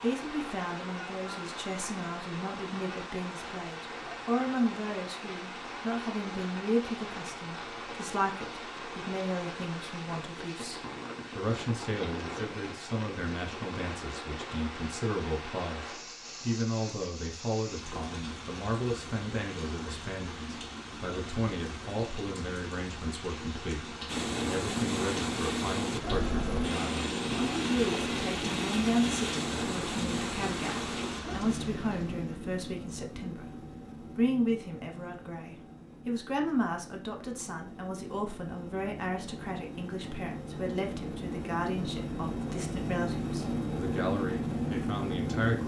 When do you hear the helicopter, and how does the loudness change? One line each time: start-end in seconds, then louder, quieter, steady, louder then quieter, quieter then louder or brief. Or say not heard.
24.1-45.6 quieter then louder.